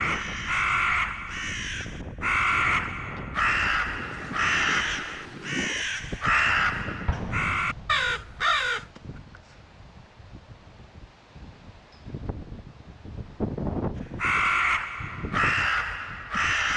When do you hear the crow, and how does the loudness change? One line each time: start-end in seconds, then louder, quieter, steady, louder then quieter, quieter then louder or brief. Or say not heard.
0.0-8.8 steady
14.2-16.7 brief.